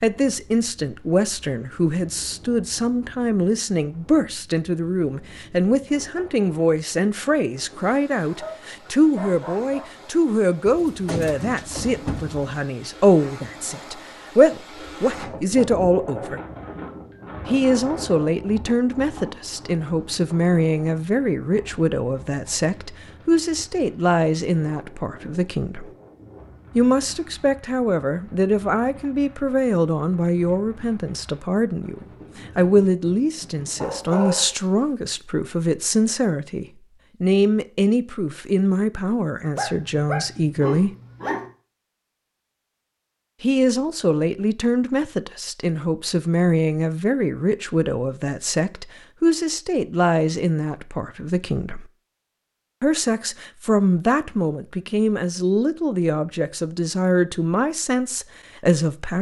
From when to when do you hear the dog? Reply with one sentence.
The dog can be heard from 8.2 to 9.9 s, from 33.8 to 35.2 s and from 39.5 to 41.5 s.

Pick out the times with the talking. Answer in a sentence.
The talking can be heard from 0.0 to 16.4 s, from 17.4 to 25.9 s, from 26.8 to 40.9 s, from 43.4 to 51.9 s and from 52.8 to 59.1 s.